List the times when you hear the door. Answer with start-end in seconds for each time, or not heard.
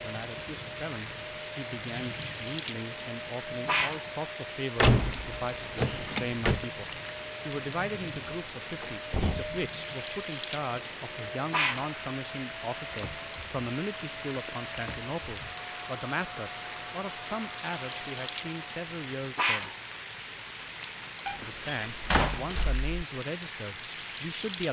4.8-6.6, 8.8-9.6, 21.2-22.9.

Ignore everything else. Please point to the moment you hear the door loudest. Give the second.
5 s.